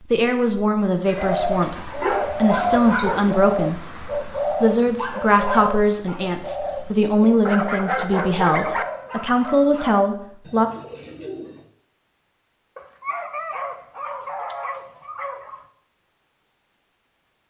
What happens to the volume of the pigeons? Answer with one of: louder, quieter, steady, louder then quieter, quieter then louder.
quieter.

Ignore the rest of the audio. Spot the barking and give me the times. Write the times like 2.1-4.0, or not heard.
1.6-3.4, 7.5-8.8, 12.8-15.7.